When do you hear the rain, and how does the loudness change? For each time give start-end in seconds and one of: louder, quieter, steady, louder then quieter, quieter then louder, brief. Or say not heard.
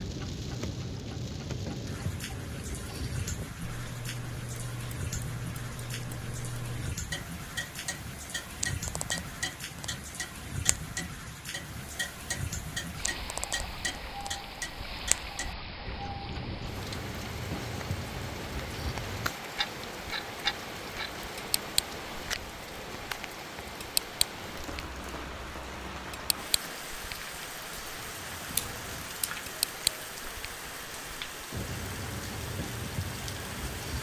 0.0-33.9 steady.